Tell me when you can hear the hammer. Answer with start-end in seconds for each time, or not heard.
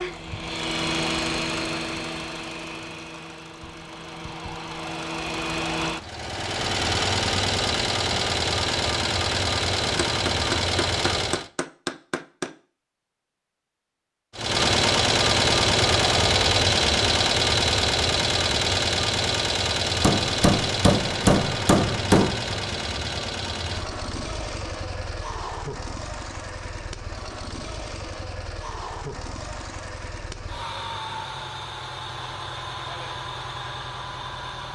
9.9-12.5, 20.0-22.4.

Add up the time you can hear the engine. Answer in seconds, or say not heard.
32 s.